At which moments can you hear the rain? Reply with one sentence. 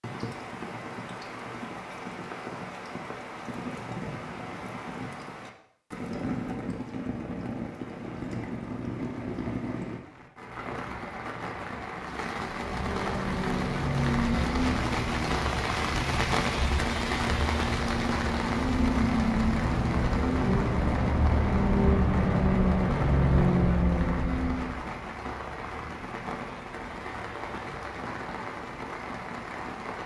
You can hear the rain from 0.0 to 30.0 s.